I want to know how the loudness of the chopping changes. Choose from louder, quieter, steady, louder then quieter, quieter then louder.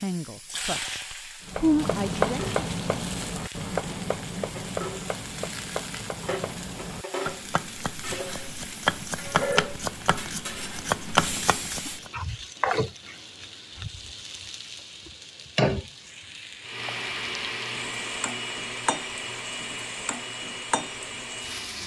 quieter then louder.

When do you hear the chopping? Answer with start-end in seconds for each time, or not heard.
1.4-12.1.